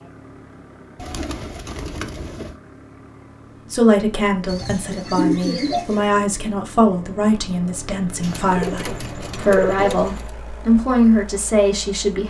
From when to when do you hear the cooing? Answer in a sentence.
The cooing can be heard from 0.9 to 2.5 s, from 4.5 to 6.2 s and from 8.2 to 10.3 s.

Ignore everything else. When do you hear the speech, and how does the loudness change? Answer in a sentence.
You can hear the speech from 3.7 to 12.2 s, getting louder.